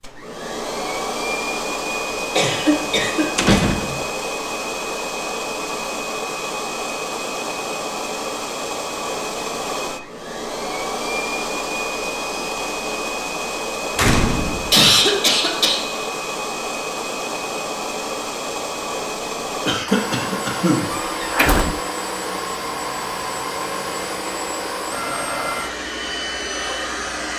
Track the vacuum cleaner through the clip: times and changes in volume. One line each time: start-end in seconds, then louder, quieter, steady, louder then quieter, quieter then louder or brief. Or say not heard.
0.0-27.3 steady.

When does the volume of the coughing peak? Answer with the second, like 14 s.
15 s.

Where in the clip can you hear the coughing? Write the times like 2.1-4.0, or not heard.
2.4-3.6, 14.7-16.0, 19.6-20.9.